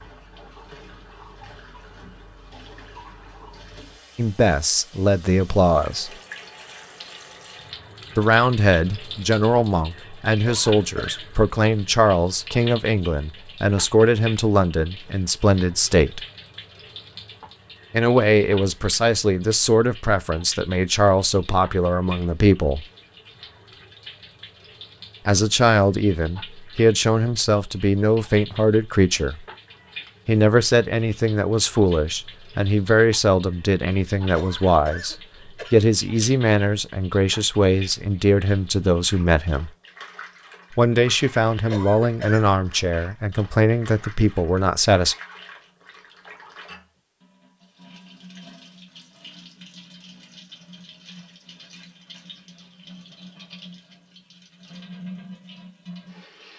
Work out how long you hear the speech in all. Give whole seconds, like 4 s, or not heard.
33 s.